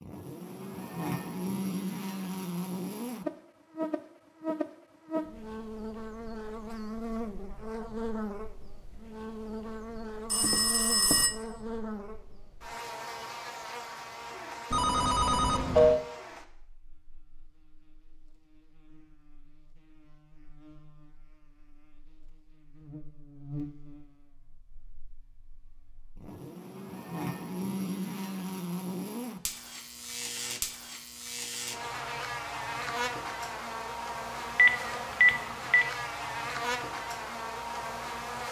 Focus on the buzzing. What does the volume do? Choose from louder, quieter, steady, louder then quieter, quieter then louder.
quieter then louder.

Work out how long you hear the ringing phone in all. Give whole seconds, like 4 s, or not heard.
4 s.